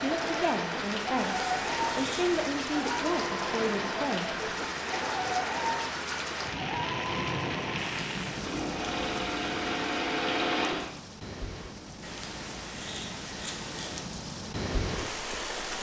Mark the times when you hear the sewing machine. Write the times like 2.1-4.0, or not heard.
0.1-10.9.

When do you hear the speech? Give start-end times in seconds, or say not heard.
0.0-4.4.